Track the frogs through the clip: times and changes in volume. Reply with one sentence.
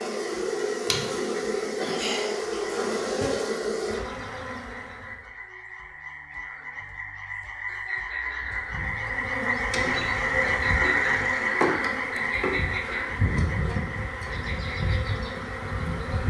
You can hear the frogs from 0.1 to 16.2 s, getting louder then quieter.